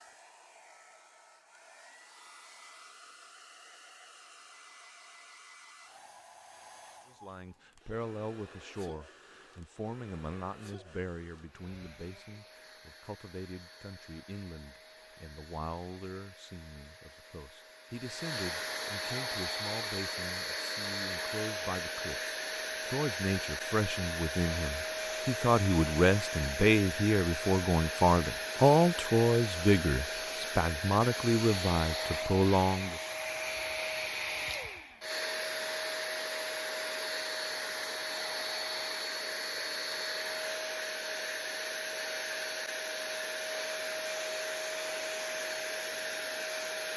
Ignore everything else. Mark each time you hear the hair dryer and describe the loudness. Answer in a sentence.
You can hear the hair dryer from 0.0 to 46.9 s, getting louder.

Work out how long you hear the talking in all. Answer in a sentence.
The talking can be heard for 26 seconds in total.